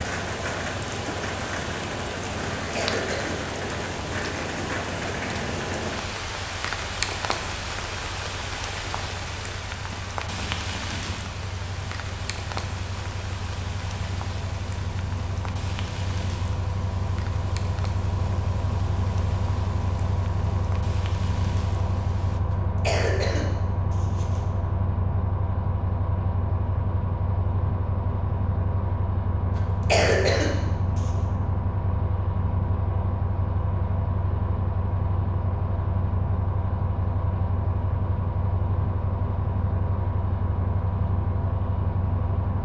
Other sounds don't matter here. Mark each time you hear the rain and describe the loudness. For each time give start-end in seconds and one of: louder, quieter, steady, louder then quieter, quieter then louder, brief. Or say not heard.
0.0-22.4 quieter.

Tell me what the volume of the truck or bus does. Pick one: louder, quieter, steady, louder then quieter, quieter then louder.
louder.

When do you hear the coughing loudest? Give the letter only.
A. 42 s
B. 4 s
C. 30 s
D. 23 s
C.